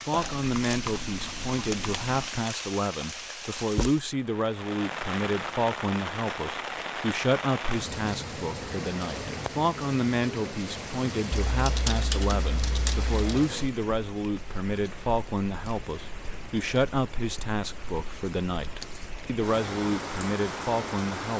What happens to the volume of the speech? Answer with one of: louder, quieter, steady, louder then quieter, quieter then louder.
steady.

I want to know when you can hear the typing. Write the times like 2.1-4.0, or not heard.
0.1-2.4, 11.6-13.5.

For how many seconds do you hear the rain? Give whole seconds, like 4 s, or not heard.
21 s.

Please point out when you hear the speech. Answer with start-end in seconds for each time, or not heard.
0.1-21.3.